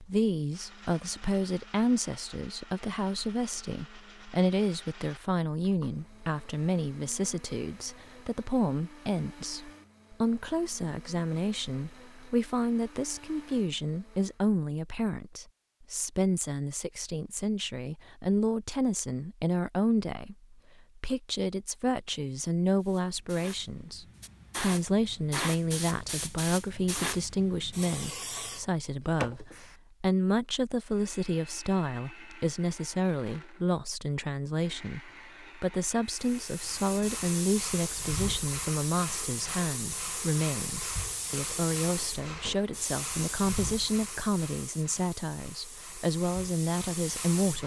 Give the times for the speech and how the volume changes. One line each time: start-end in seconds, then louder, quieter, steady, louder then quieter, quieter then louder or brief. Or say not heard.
0.0-47.6 steady.